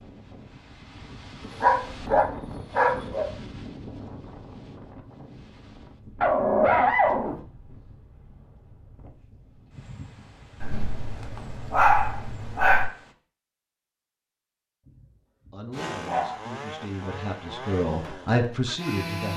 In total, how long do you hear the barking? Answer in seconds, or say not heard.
7 s.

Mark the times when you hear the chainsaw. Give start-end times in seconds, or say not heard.
15.7-19.3.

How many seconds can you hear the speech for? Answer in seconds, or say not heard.
4 s.